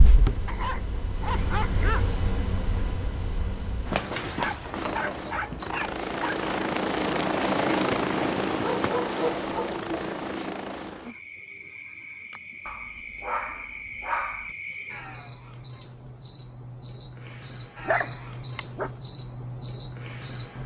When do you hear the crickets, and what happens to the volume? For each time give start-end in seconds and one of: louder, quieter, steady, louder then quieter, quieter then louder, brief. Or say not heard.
0.0-20.6 quieter then louder.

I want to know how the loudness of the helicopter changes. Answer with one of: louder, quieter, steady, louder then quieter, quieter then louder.
louder then quieter.